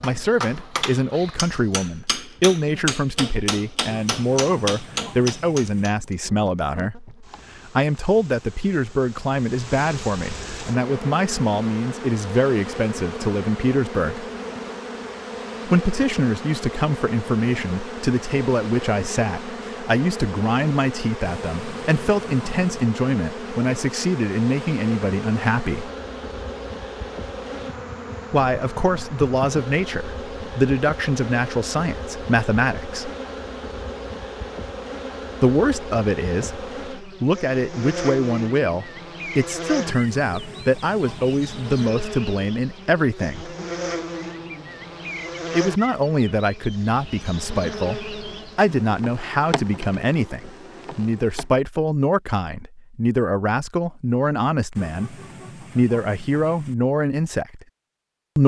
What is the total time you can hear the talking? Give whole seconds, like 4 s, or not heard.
49 s.